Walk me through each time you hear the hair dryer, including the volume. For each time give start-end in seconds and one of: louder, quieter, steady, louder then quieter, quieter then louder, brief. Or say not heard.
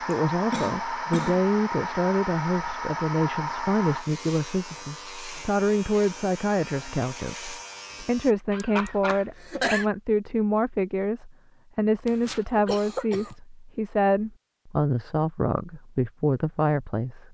0.0-8.0 quieter.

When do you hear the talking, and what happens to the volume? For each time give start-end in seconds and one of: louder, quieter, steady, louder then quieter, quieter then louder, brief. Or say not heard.
0.1-17.2 steady.